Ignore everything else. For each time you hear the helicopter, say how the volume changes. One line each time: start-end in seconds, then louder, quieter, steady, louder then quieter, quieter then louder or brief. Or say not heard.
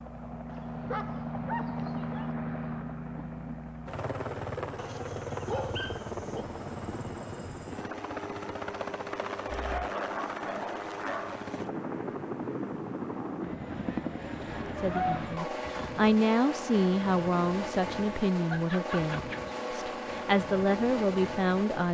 0.0-21.8 steady.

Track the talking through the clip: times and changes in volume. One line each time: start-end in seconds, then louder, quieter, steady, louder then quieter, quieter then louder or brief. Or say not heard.
14.8-21.8 quieter then louder.